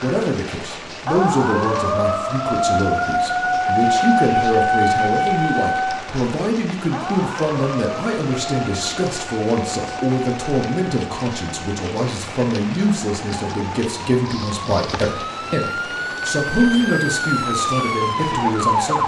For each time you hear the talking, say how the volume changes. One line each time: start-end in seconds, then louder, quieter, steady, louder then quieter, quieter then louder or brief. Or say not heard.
0.0-19.0 steady.